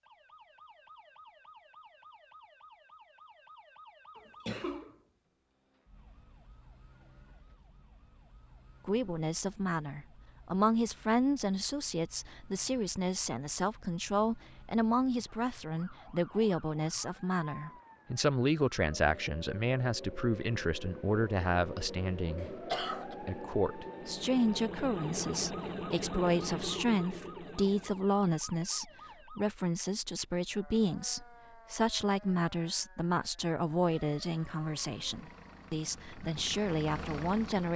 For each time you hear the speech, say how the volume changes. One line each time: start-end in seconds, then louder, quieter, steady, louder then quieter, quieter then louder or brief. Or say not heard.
8.8-37.7 steady.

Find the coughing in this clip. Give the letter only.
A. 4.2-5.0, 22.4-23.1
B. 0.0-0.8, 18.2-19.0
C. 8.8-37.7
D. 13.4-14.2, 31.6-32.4
A.